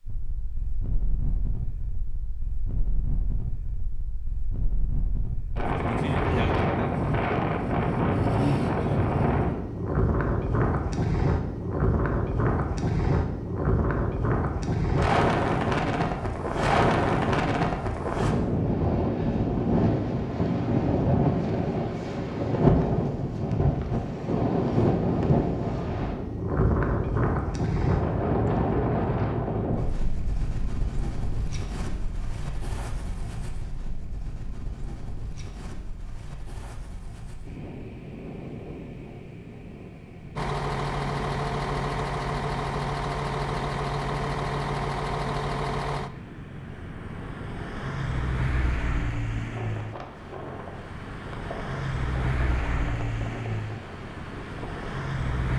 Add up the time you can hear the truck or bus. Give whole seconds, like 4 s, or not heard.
15 s.